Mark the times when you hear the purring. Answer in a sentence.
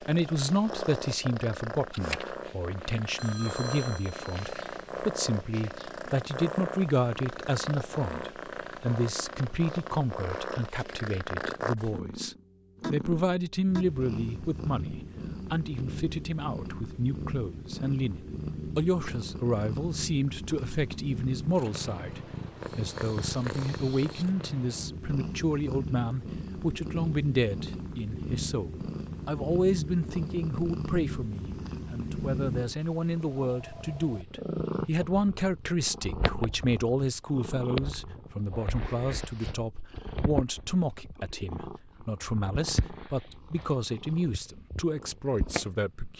You can hear the purring from 0.0 to 46.1 s.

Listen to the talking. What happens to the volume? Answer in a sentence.
The volume of the talking stays about the same.